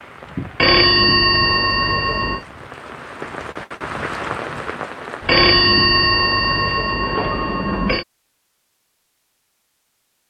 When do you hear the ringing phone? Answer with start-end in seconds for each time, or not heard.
0.6-2.4, 5.2-8.1.